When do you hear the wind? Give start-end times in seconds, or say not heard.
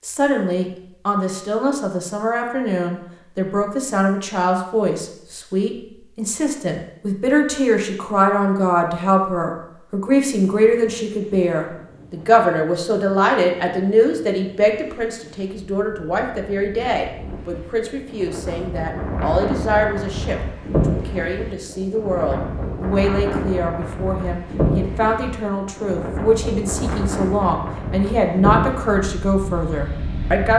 10.6-30.5.